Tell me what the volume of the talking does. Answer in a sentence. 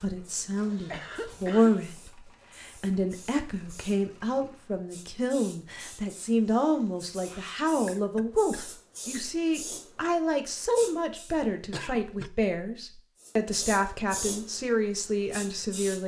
The volume of the talking stays about the same.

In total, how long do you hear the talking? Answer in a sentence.
You can hear the talking for 16 seconds altogether.